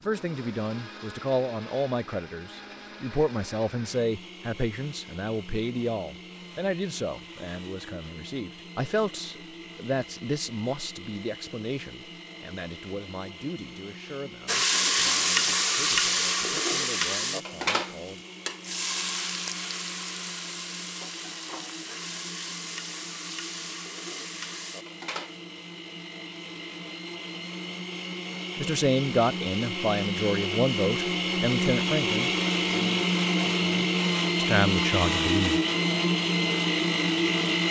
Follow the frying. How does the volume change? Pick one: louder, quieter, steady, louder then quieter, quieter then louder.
quieter.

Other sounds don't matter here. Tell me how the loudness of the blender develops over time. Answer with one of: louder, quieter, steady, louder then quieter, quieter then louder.
louder.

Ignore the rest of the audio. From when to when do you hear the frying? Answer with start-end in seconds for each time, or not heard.
14.4-25.4.